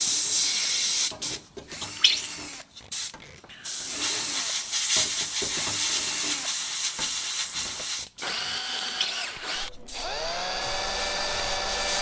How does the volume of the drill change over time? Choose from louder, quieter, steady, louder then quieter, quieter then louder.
louder.